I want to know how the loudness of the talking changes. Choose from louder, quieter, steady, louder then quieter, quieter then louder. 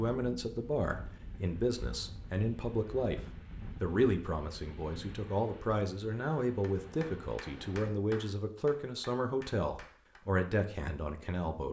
steady.